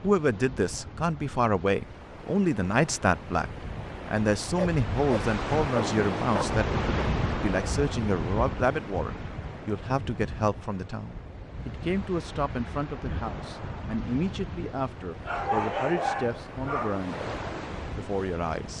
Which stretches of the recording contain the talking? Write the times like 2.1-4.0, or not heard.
0.0-18.7.